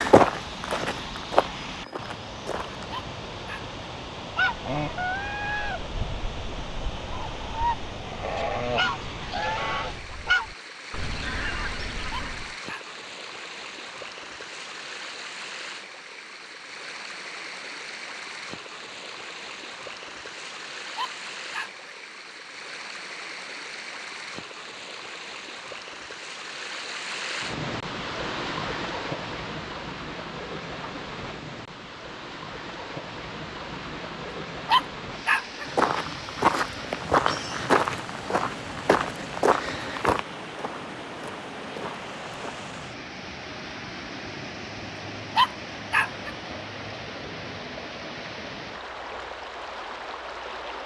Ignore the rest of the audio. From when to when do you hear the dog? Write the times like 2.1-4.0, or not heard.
2.9-3.6, 12.1-12.8, 20.9-21.9, 34.6-35.6, 45.4-46.4.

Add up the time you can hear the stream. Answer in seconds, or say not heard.
51 s.